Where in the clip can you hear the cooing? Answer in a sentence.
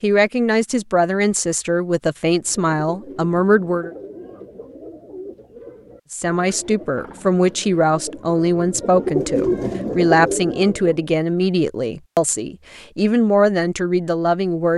You can hear the cooing from 2.4 to 11.1 s.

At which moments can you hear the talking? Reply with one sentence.
The talking can be heard from 0.0 to 3.9 s and from 6.1 to 14.7 s.